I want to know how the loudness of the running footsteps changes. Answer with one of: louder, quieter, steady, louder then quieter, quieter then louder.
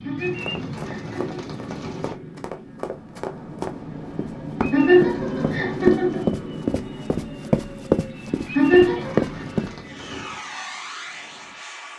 louder.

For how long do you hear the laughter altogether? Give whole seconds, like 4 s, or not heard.
4 s.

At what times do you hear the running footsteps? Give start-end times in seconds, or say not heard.
0.4-9.7.